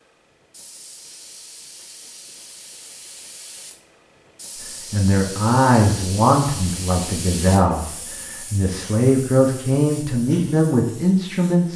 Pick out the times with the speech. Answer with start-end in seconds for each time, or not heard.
4.9-11.7.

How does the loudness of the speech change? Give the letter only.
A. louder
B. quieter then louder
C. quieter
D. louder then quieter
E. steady
B.